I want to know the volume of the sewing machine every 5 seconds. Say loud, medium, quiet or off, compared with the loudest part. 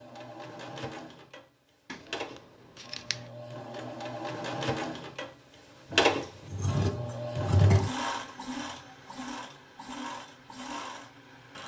medium, loud, medium.